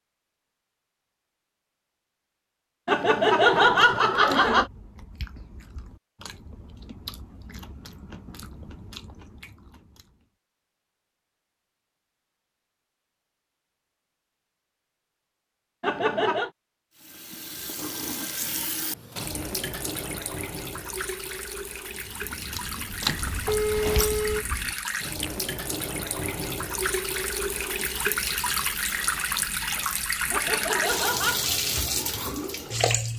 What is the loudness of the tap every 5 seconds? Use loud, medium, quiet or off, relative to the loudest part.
off, off, off, medium, medium, loud, loud.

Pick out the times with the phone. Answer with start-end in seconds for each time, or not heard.
23.1-24.4.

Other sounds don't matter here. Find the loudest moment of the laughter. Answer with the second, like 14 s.
4 s.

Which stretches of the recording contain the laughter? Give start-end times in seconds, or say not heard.
2.9-4.7, 15.8-16.5, 30.3-31.5.